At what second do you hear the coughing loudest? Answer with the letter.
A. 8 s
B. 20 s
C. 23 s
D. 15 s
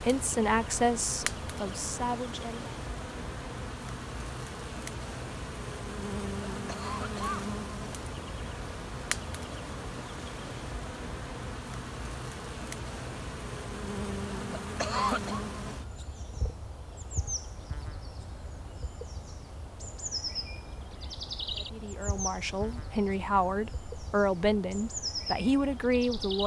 D.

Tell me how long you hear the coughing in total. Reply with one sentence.
The coughing can be heard for 2 seconds in total.